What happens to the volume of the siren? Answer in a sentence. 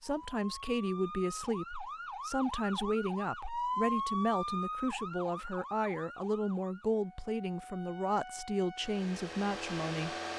The loudness of the siren goes up, then down.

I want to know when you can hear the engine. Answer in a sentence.
You can hear the engine from 8.8 to 10.3 s.